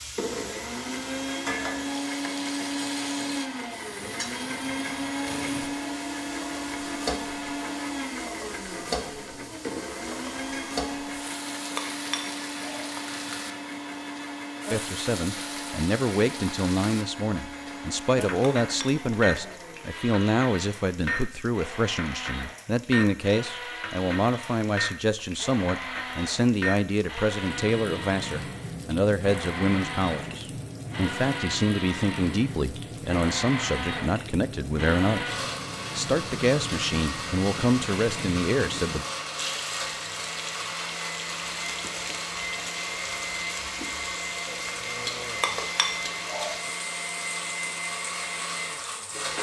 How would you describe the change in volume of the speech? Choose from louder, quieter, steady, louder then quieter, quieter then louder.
steady.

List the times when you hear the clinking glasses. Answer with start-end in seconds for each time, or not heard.
11.8-12.9, 18.4-19.6, 45.4-46.5.